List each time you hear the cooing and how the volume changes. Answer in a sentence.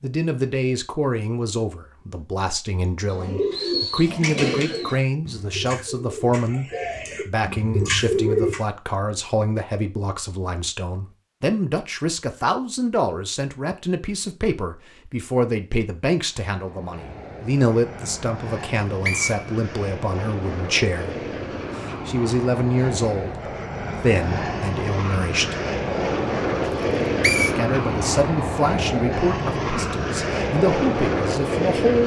The cooing can be heard from 3.1 to 8.6 s, getting quieter then louder.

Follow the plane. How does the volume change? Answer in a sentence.
The volume of the plane goes up.